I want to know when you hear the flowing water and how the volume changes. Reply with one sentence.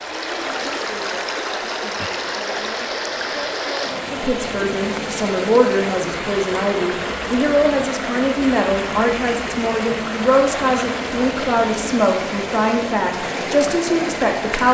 The flowing water can be heard from 0.0 to 14.6 s, at a steady volume.